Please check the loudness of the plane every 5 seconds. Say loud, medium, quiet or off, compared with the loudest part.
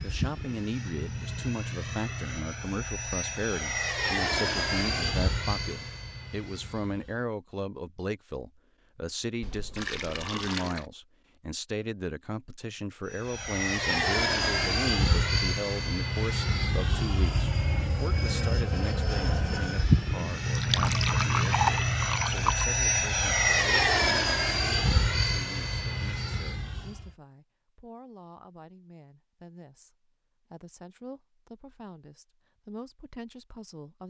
medium, medium, loud, loud, loud, medium, off.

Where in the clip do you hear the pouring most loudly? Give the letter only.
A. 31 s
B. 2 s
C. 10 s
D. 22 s
D.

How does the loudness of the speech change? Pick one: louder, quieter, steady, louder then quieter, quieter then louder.
quieter.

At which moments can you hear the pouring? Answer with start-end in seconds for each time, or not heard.
9.4-10.8, 20.6-22.6.